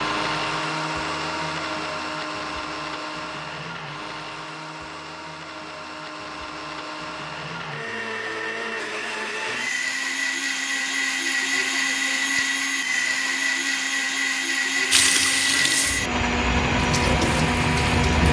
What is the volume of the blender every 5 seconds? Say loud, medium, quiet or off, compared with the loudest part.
medium, medium, loud, loud.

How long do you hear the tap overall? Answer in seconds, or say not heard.
3 s.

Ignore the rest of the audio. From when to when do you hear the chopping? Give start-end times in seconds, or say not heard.
not heard.